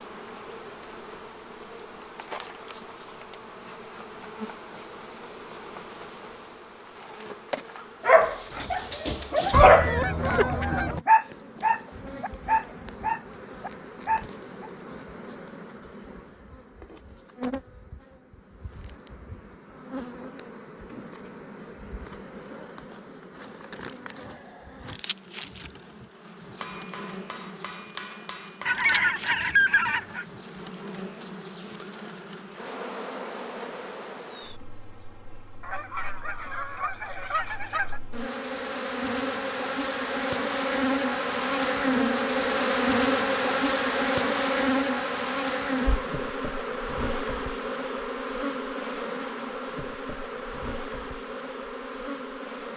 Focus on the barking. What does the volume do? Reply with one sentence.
The volume of the barking goes up, then down.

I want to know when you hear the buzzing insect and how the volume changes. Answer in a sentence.
The buzzing insect can be heard from 0.0 to 52.7 s, getting louder.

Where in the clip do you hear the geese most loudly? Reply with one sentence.
The loudest moment of the geese is at 30 seconds.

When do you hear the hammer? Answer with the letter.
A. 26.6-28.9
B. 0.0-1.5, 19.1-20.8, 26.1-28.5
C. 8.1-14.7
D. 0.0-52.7
A.